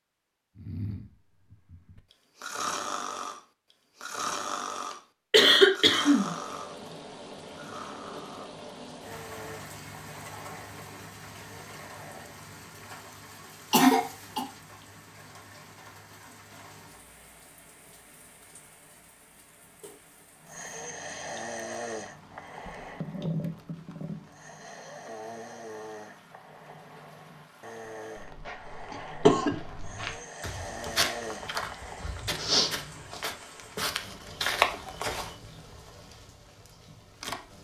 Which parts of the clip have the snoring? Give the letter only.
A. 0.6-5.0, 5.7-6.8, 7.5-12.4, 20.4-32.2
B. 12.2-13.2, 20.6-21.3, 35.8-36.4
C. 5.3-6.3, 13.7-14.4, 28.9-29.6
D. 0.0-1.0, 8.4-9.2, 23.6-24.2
A.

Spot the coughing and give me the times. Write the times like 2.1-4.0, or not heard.
5.3-6.3, 13.7-14.4, 28.9-29.6.